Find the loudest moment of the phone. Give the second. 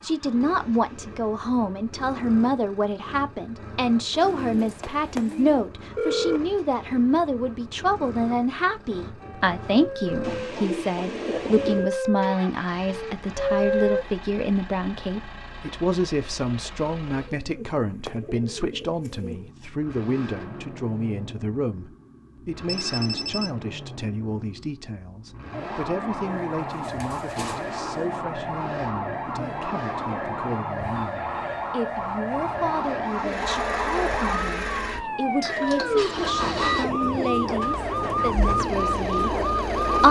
6 s.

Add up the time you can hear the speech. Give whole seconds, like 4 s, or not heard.
40 s.